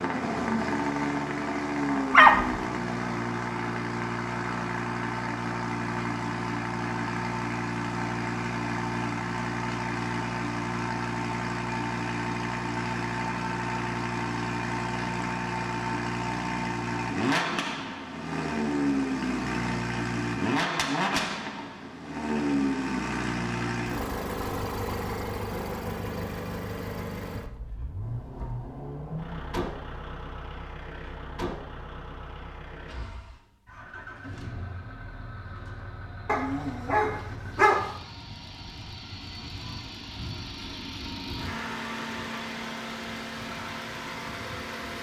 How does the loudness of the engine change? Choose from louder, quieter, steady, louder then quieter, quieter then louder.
quieter.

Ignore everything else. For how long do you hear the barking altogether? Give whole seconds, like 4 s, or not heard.
2 s.